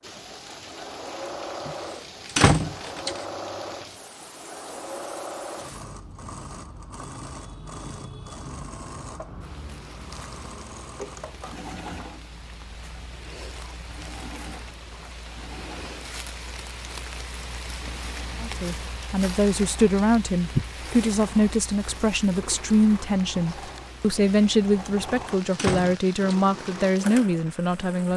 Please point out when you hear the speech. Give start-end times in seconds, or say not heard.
18.4-28.1.